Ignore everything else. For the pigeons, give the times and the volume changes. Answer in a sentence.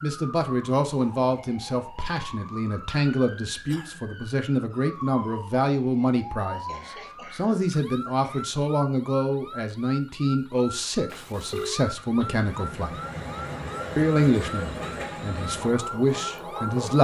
The pigeons can't be heard in this clip.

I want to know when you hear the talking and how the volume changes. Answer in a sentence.
The talking can be heard from 0.0 to 12.9 s, at a steady volume; and briefly from 13.9 to 16.9 s.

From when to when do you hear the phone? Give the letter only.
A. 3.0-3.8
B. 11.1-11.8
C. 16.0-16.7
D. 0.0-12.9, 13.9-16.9
B.